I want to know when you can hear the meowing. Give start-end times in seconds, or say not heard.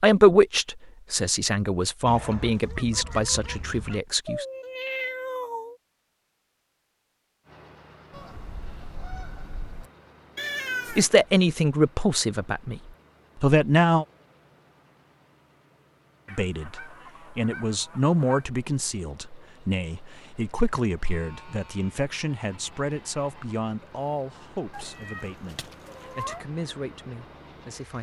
4.2-5.8, 10.3-11.1, 24.7-26.4.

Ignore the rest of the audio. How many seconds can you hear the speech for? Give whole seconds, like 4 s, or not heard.
19 s.